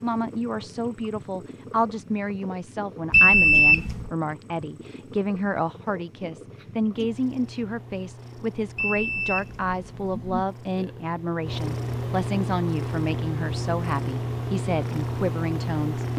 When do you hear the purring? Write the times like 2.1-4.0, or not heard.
0.0-16.1.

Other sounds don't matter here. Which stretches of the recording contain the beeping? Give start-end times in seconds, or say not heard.
3.1-4.1, 8.8-10.4.